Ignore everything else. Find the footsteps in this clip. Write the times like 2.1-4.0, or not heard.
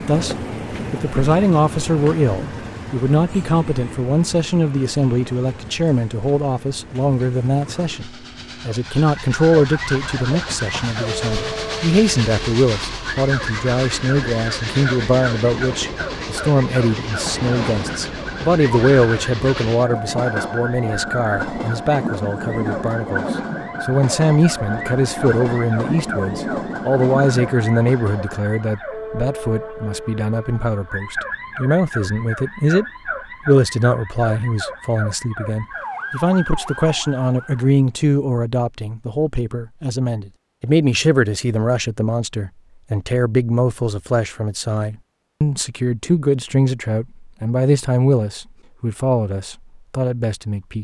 not heard.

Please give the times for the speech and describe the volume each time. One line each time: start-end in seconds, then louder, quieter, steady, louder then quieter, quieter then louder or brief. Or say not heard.
0.1-32.9 steady
33.5-50.7 steady.